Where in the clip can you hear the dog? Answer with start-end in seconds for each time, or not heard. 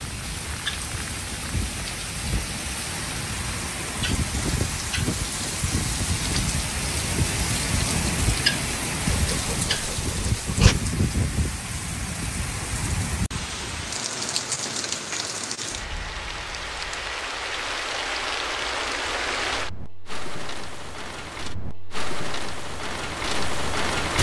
9.1-10.8.